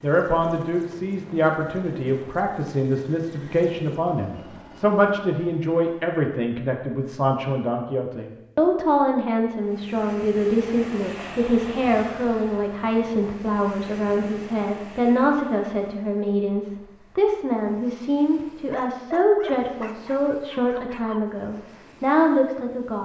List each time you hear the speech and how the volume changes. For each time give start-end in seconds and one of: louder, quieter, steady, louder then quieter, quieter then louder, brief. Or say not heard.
0.0-23.0 steady.